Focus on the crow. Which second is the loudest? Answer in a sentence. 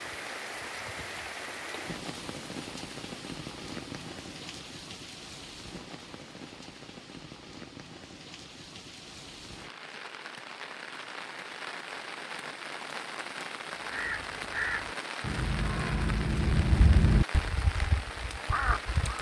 The volume of the crow peaks at 17 seconds.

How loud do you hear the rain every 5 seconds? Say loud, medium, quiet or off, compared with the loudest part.
loud, medium, loud, loud.